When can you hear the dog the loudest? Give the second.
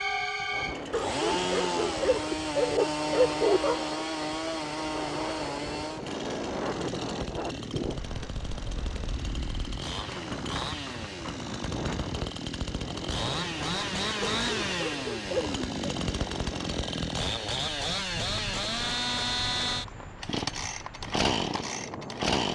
3 s.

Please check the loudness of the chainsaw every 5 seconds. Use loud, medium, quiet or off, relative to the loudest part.
loud, medium, loud, loud, loud.